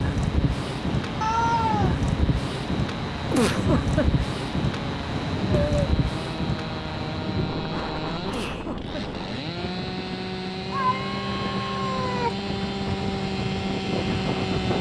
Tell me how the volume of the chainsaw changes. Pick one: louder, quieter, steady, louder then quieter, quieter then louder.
louder.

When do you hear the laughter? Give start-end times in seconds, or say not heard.
3.3-4.2, 8.2-9.2.